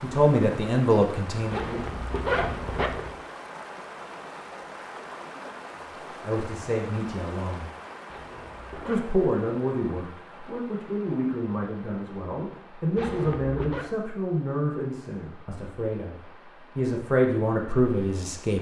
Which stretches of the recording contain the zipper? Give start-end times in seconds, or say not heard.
1.5-3.1, 8.1-9.1, 12.9-13.9.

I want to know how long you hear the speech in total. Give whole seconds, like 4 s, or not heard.
13 s.